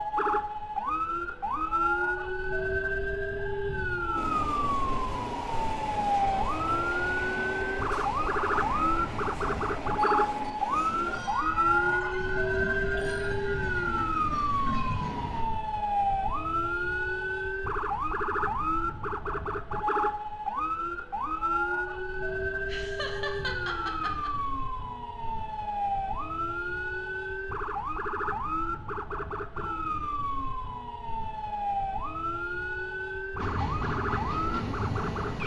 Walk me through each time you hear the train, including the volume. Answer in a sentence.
The train can be heard from 4.2 to 15.4 s, at a steady volume; and briefly from 33.4 to 35.4 s.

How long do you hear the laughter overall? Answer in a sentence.
The laughter can be heard for 2 seconds in total.